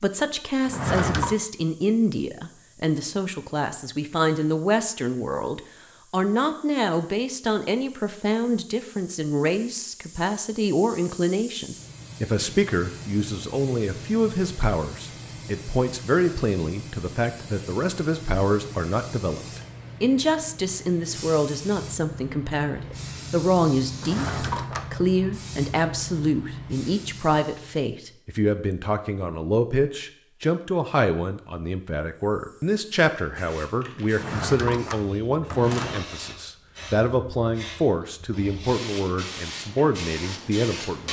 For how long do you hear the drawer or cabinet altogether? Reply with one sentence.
You can hear the drawer or cabinet for 4 seconds altogether.